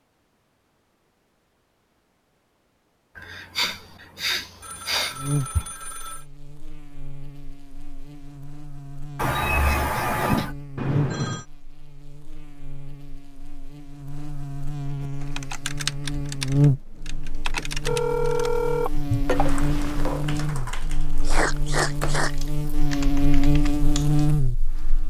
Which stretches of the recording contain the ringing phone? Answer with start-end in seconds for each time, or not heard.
4.6-6.2, 10.8-11.4, 17.9-20.3.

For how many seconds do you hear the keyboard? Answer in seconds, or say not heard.
10 s.